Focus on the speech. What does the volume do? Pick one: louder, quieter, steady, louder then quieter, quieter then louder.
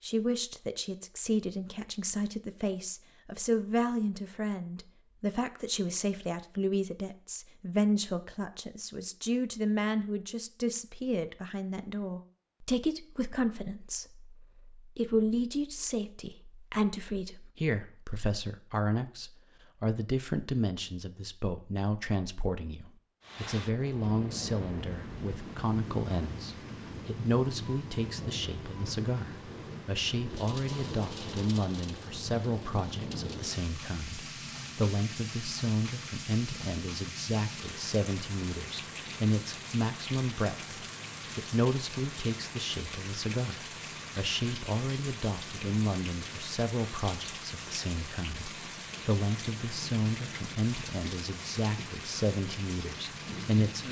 steady.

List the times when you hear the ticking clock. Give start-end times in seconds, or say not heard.
not heard.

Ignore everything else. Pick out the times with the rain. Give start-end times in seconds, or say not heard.
23.2-53.8.